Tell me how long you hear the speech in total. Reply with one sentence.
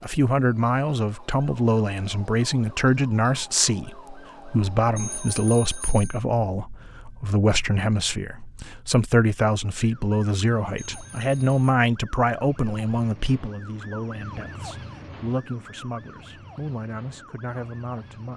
You can hear the speech for 18 seconds altogether.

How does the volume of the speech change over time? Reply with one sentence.
The volume of the speech goes down.